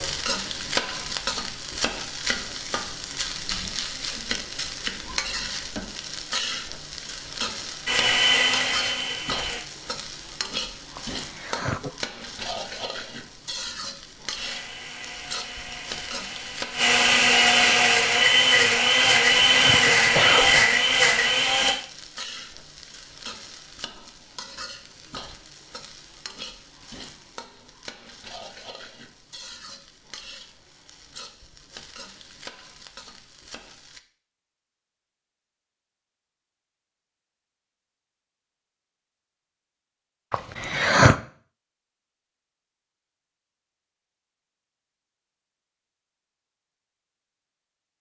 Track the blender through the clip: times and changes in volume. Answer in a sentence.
You can hear the blender briefly from 7.8 to 9.7 s; and from 14.3 to 21.8 s, getting louder.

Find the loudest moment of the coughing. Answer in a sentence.
The volume of the coughing peaks at 41 seconds.